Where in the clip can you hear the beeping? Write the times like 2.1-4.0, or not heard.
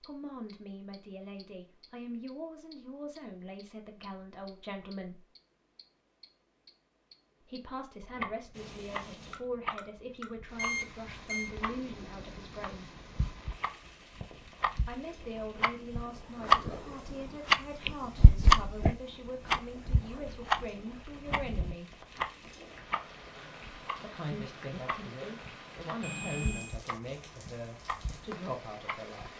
10.6-11.5, 26.0-26.8.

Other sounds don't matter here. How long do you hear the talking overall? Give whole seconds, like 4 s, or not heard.
23 s.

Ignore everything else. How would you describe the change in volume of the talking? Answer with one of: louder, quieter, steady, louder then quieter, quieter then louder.
steady.